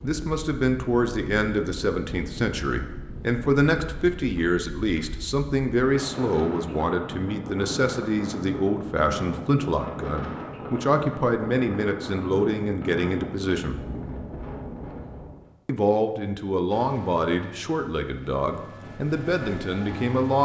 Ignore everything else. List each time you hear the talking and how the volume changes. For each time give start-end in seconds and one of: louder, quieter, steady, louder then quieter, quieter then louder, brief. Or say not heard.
0.0-13.8 steady
15.7-20.4 steady.